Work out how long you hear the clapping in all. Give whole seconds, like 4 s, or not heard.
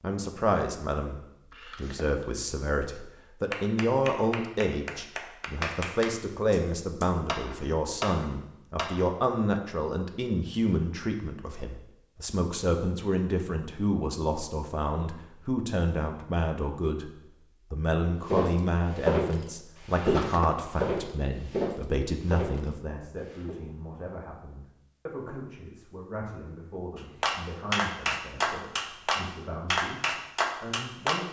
10 s.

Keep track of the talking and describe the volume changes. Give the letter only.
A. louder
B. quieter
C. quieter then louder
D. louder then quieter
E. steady
B.